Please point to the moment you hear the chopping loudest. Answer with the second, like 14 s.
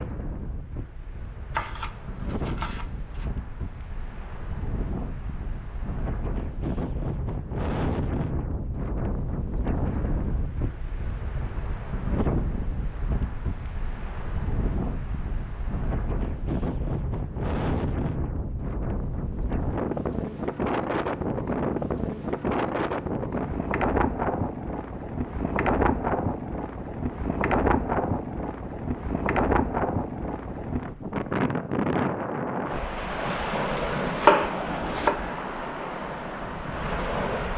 34 s.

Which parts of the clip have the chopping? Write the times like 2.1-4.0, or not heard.
1.5-3.3, 33.0-35.1.